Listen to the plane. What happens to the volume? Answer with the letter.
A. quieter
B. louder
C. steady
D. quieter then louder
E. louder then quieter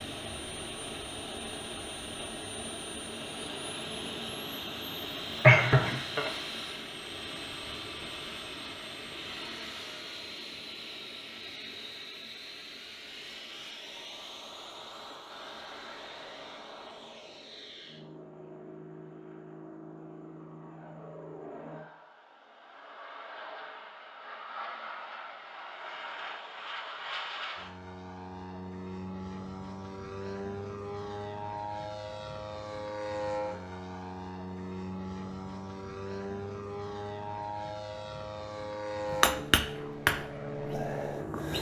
D.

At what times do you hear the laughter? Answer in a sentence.
You can hear the laughter from 5.4 to 6.3 s.